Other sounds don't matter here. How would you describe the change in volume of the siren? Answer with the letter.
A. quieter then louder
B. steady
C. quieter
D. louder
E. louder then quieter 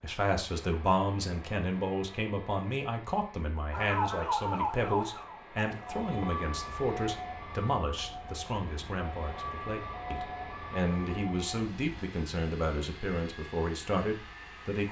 C.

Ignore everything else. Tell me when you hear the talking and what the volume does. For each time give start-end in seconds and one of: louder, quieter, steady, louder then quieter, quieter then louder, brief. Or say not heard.
0.0-14.8 steady.